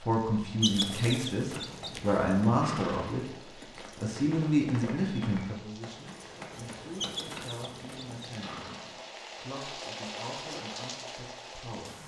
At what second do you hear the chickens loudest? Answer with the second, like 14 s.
1 s.